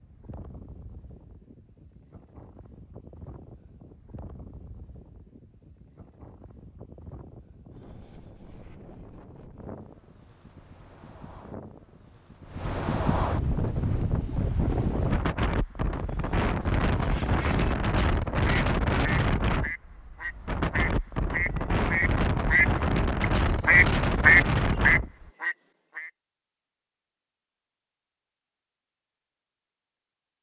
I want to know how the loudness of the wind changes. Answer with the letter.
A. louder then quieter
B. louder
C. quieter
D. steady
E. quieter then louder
B.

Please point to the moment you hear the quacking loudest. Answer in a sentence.
The volume of the quacking peaks at 24 seconds.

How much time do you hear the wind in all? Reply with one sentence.
You can hear the wind for 25 seconds altogether.